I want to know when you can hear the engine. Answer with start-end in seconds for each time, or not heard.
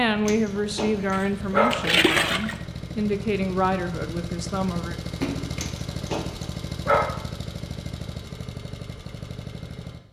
0.0-10.0.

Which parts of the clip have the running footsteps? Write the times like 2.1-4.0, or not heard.
not heard.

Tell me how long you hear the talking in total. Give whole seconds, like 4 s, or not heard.
5 s.